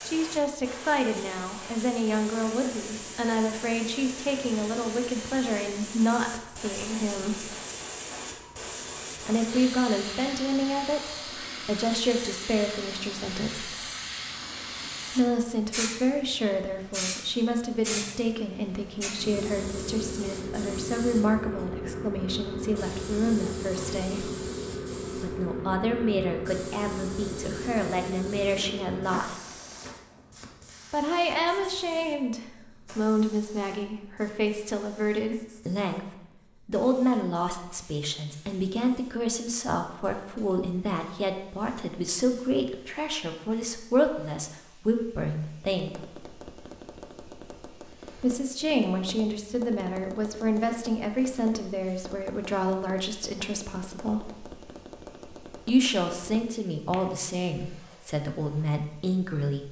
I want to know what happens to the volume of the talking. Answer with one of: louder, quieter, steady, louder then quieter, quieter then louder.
steady.